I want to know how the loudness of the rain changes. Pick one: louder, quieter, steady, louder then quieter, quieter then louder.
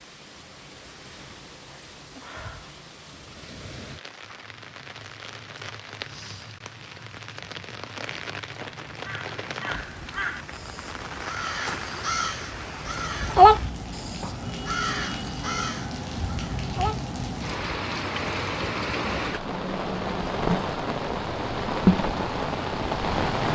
louder.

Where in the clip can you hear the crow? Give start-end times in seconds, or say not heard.
8.6-17.0.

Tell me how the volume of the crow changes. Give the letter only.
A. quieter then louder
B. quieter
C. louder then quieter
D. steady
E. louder
C.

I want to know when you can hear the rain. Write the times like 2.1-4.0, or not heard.
0.0-23.4.